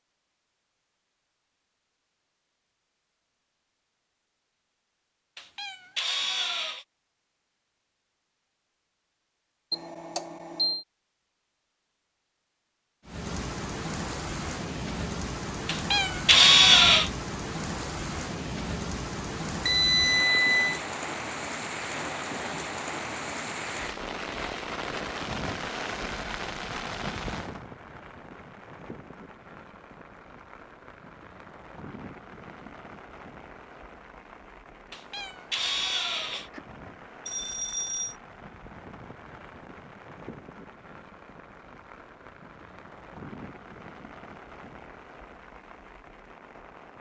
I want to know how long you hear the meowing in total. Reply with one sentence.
You can hear the meowing for 5 seconds altogether.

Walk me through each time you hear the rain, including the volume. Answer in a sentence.
The rain can be heard from 13.1 to 46.9 s, getting quieter.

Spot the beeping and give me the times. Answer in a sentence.
The beeping can be heard from 9.7 to 10.8 s, from 19.6 to 20.8 s and from 37.2 to 38.1 s.